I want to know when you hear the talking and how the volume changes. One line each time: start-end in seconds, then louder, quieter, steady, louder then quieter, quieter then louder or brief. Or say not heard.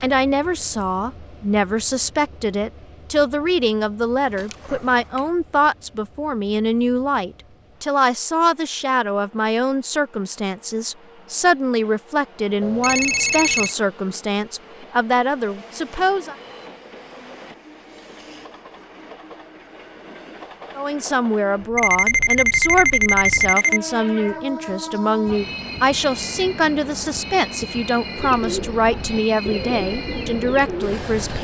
0.0-16.4 steady
20.8-31.3 steady.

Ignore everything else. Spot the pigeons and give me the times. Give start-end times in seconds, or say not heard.
28.1-31.3.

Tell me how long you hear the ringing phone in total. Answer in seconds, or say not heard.
4 s.